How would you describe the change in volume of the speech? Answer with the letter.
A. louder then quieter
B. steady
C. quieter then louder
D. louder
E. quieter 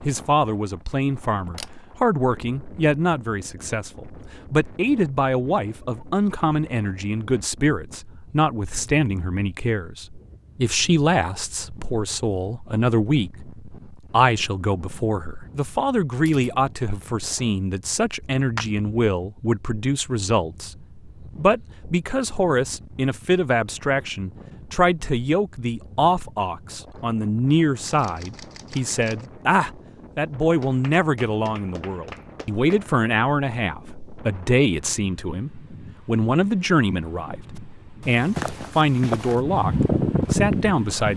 B.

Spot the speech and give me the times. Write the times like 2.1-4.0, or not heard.
0.0-41.1.